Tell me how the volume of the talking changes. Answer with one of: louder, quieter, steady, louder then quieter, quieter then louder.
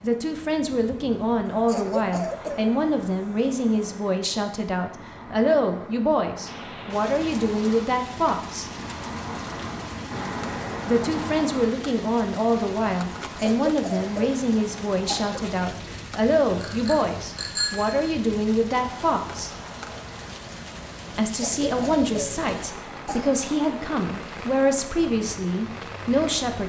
steady.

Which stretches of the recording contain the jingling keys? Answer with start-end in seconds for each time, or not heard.
not heard.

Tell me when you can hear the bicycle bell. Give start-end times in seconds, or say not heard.
16.6-18.1.